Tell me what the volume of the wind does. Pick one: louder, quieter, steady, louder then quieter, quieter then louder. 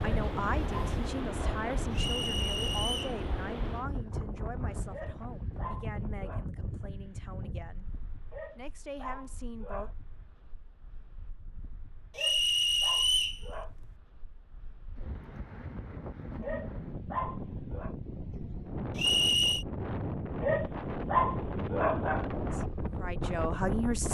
quieter then louder.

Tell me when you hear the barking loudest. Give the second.
21 s.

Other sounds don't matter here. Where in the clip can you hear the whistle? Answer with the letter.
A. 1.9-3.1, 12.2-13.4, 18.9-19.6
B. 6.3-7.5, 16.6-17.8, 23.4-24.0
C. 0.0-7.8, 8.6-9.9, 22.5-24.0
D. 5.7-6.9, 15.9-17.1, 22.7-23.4
A.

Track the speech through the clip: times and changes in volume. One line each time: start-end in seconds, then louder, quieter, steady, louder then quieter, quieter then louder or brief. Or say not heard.
0.0-7.8 quieter
8.6-9.9 brief
22.5-24.0 brief.